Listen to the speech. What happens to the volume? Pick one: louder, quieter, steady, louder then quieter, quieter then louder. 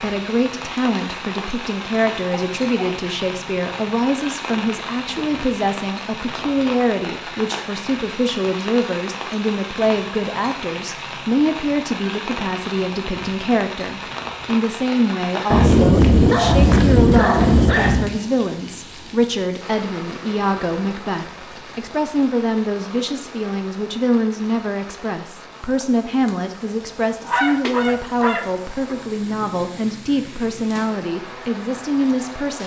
steady.